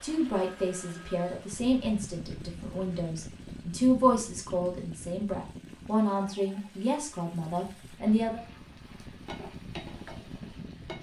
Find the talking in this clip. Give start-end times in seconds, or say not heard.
0.0-8.4.